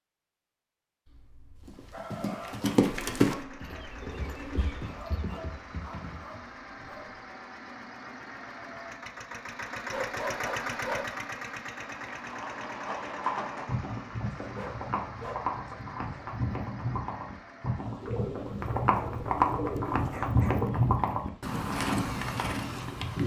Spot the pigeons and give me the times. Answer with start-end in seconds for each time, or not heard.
3.0-4.8, 18.0-20.7.